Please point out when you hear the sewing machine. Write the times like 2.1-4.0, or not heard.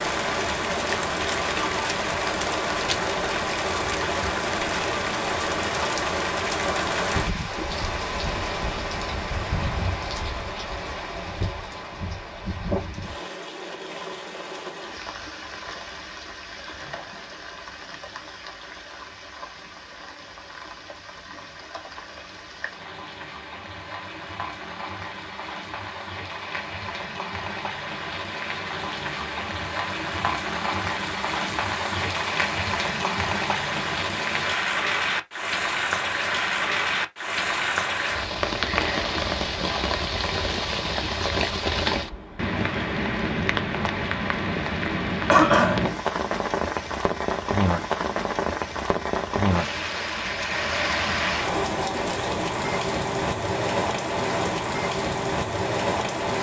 not heard.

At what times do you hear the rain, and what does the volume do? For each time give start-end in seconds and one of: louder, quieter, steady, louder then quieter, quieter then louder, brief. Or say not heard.
0.0-56.3 quieter then louder.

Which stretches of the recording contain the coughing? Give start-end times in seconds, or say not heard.
45.2-45.9.